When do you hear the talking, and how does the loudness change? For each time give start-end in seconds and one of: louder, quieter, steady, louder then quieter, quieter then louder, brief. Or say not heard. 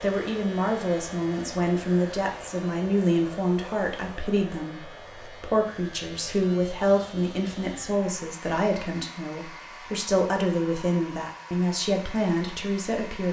0.0-13.2 steady.